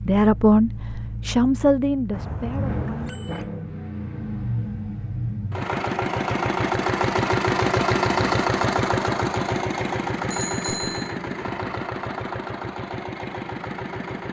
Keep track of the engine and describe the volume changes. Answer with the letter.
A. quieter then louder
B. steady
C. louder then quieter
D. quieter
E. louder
C.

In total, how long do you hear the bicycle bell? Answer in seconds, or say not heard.
2 s.